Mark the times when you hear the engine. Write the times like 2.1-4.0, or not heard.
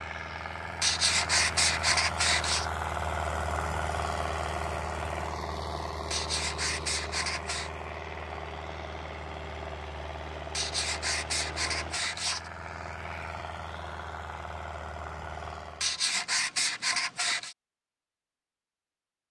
0.0-16.1.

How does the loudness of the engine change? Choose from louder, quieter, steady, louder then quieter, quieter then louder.
quieter.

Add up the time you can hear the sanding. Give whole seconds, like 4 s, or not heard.
7 s.